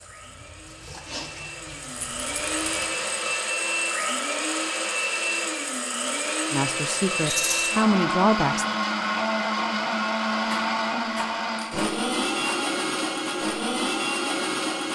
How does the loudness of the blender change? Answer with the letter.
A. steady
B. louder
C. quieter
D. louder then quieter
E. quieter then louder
B.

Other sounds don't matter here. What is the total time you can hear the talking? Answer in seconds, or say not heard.
2 s.